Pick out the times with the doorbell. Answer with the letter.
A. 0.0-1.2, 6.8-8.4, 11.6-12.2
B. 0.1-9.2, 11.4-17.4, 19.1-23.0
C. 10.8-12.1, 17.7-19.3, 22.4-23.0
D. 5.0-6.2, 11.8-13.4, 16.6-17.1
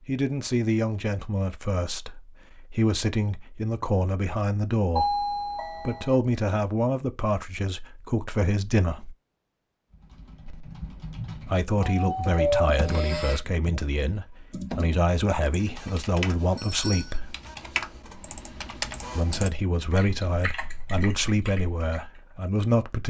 D.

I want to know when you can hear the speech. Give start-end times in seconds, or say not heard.
0.1-9.2, 11.4-17.4, 19.1-23.0.